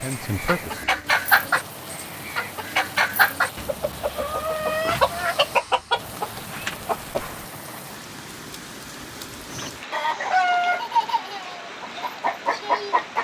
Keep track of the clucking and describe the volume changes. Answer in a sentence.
The loudness of the clucking stays about the same.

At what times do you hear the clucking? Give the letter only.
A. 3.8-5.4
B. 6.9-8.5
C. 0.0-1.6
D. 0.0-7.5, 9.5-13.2
D.